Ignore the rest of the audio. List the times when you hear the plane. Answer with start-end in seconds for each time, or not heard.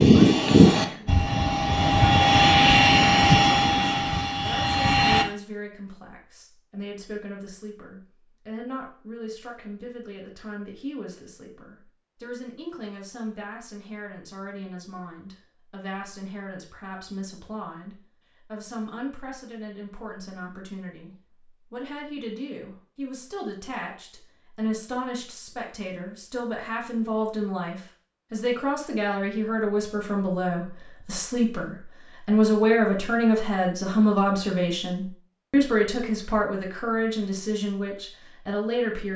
0.0-5.2.